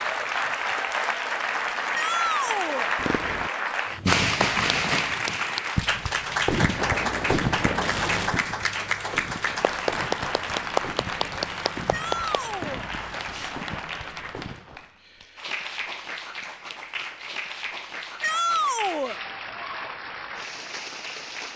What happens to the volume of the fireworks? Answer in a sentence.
The loudness of the fireworks goes down.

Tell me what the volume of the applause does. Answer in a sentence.
The loudness of the applause goes down.